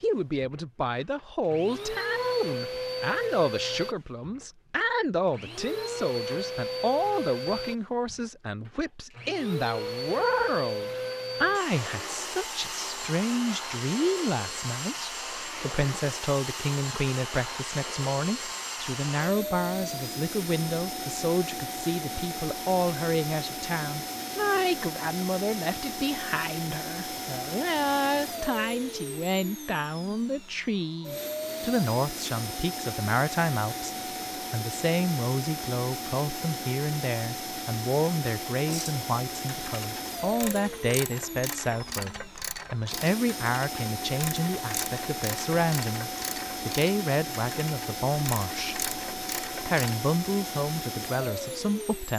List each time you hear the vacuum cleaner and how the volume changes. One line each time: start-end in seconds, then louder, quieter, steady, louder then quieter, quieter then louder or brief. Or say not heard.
0.1-52.1 steady.